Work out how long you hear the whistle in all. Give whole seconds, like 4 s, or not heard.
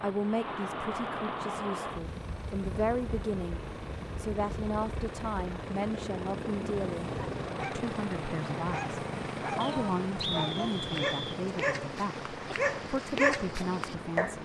2 s.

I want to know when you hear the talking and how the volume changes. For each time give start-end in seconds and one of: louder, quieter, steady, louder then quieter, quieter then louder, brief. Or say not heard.
0.0-14.4 steady.